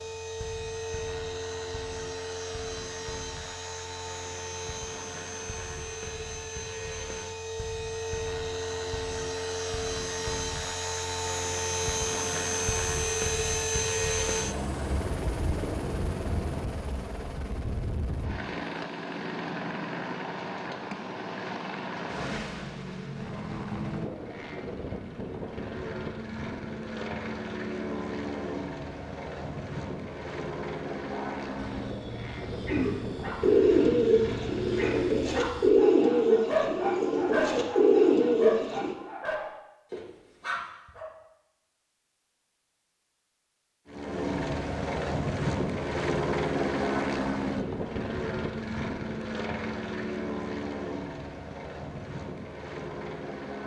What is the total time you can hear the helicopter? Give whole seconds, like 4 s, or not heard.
45 s.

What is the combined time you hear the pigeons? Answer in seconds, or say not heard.
6 s.